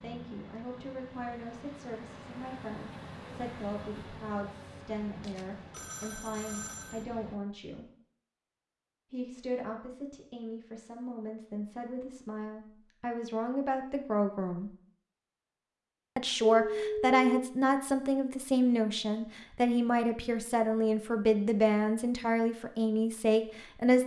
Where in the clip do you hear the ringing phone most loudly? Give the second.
17 s.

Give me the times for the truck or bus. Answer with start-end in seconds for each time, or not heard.
0.0-7.4.